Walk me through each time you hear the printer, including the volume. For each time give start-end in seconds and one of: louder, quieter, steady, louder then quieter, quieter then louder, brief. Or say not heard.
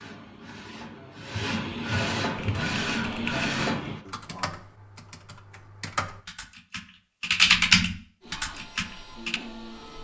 0.0-4.0 louder
8.2-9.9 brief.